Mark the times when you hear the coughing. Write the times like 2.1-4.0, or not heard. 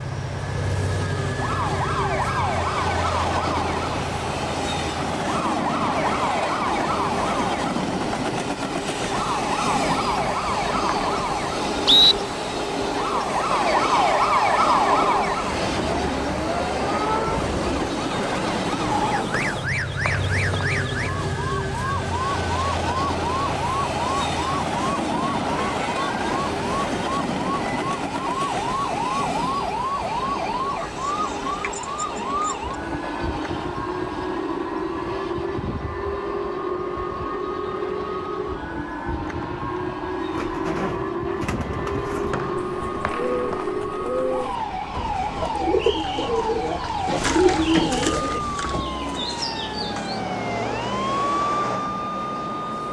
not heard.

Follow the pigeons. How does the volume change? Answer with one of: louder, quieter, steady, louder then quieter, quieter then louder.
louder then quieter.